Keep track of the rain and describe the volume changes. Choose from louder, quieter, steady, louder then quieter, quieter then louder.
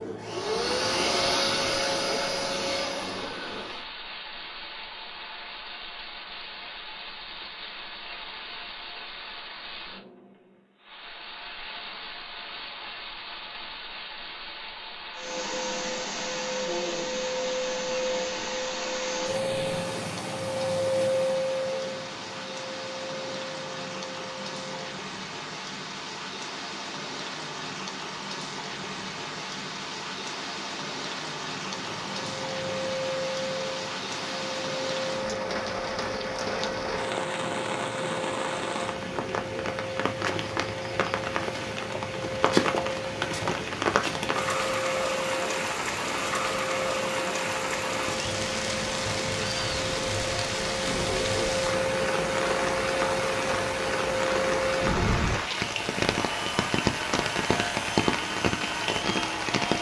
louder.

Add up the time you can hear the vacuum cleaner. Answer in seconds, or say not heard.
42 s.